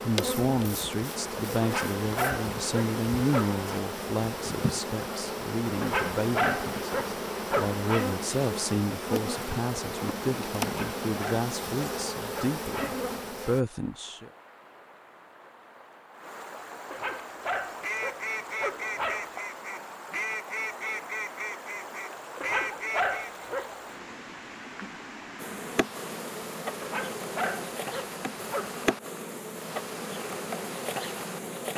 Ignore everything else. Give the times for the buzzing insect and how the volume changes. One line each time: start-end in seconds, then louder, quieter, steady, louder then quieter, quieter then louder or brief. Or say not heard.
0.0-13.7 steady
25.4-31.7 steady.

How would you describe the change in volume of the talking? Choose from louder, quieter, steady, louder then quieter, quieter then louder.
steady.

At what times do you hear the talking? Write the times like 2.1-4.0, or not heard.
0.0-14.3.